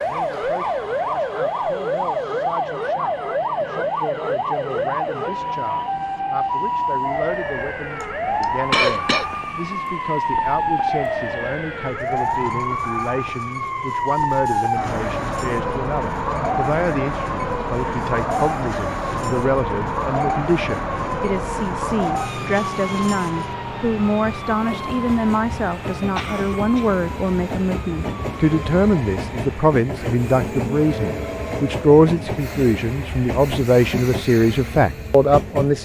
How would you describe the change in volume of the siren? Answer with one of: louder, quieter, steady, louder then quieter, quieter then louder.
quieter.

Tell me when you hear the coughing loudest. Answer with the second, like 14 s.
9 s.